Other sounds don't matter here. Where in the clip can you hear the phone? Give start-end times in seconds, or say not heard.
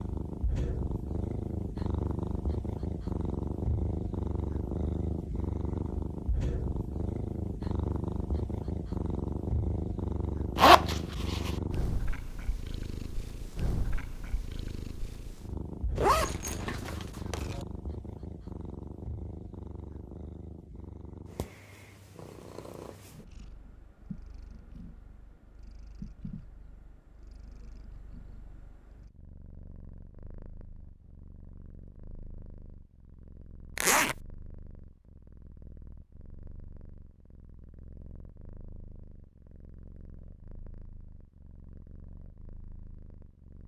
not heard.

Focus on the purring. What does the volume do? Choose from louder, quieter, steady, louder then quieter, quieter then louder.
quieter.